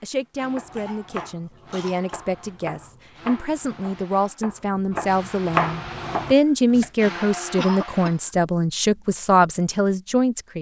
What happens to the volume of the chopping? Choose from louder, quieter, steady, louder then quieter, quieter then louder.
louder.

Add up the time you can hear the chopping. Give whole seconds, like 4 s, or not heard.
6 s.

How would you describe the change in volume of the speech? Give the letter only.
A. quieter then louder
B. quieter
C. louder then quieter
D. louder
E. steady
D.